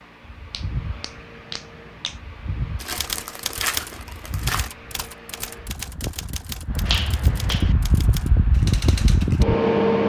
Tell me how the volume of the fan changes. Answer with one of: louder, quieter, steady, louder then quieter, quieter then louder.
louder.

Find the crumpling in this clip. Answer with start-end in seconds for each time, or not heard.
2.8-4.7.